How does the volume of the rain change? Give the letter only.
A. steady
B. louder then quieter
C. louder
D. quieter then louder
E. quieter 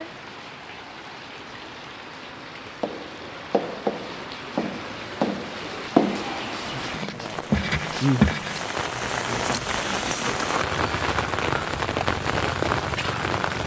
C.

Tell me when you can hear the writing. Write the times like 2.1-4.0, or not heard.
2.8-10.7.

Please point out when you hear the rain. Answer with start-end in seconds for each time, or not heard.
0.0-13.6.